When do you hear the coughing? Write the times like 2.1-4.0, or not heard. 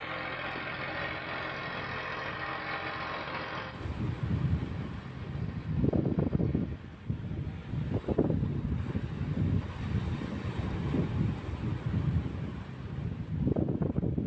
not heard.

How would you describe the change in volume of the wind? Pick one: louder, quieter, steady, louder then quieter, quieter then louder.
louder.